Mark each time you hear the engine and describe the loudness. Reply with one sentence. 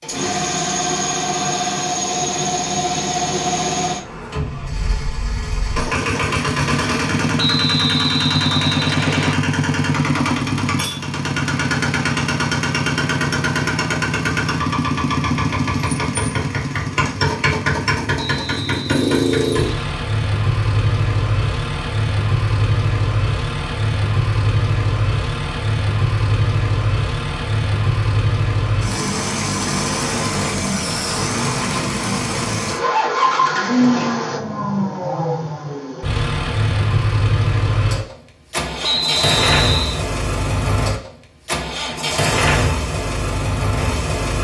The engine can be heard from 0.0 to 44.3 s, at a steady volume.